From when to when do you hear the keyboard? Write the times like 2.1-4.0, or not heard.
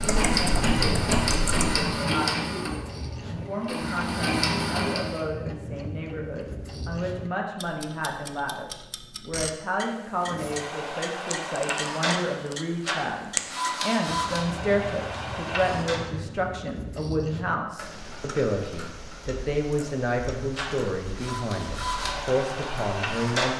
0.0-1.8.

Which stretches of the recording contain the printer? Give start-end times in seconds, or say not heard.
0.0-5.2, 10.2-16.0, 20.6-23.5.